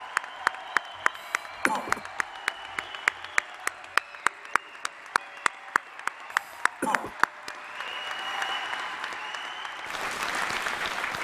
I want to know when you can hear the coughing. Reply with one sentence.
The coughing can be heard from 1.1 to 2.0 s and from 6.3 to 7.2 s.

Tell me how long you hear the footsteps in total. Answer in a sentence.
You can't hear the footsteps here.